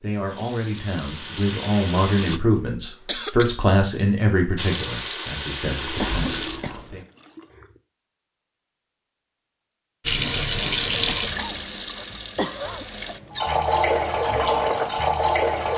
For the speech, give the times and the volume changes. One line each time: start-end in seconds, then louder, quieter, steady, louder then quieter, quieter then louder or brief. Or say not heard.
0.0-7.0 louder then quieter.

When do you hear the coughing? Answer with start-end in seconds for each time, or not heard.
2.9-3.5, 6.0-7.0, 10.8-12.8.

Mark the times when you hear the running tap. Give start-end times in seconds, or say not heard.
0.0-2.4, 4.5-7.8, 10.0-15.7.